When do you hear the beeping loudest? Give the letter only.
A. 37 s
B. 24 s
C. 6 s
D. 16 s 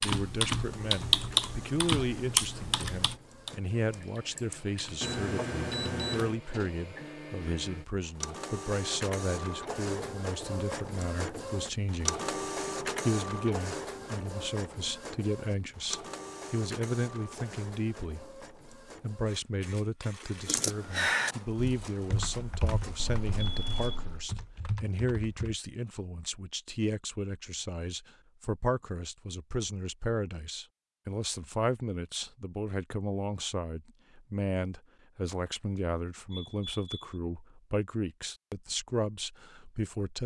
C.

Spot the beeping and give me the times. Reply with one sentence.
You can hear the beeping from 5.0 to 6.3 s, from 22.9 to 24.3 s and from 36.3 to 37.1 s.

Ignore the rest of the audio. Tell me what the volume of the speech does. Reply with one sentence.
The loudness of the speech stays about the same.